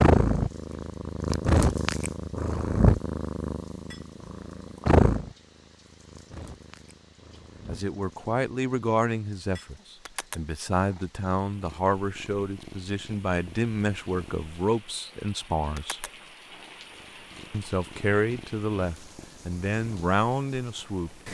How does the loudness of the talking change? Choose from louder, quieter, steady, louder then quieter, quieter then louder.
steady.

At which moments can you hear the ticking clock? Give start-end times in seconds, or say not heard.
not heard.